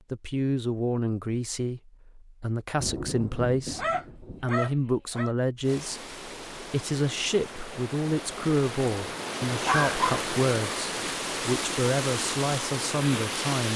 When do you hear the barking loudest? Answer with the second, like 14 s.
10 s.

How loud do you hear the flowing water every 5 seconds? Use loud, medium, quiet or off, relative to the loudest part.
off, medium, loud.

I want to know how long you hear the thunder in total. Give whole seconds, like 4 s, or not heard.
2 s.